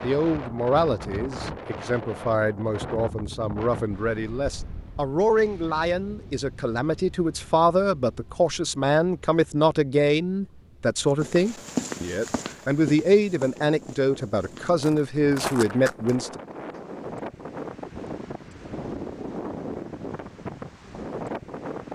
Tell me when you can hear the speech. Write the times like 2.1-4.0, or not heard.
0.0-16.4.